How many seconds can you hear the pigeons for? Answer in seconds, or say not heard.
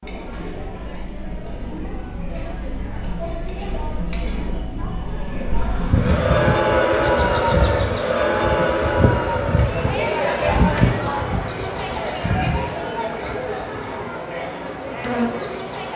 not heard.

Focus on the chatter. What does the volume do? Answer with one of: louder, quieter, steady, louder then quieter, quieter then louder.
louder then quieter.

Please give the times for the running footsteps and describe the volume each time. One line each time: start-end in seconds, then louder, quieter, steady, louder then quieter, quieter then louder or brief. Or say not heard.
not heard.